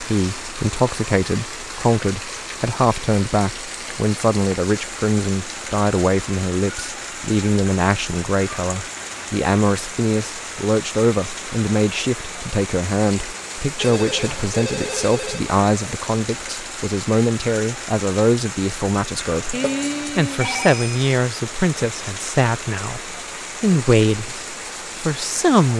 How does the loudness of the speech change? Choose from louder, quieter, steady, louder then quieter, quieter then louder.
steady.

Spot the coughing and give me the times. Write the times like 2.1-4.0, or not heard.
not heard.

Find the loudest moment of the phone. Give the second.
20 s.